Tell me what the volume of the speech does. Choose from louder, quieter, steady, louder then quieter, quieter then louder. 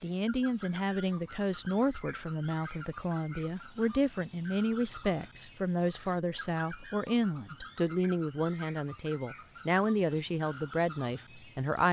steady.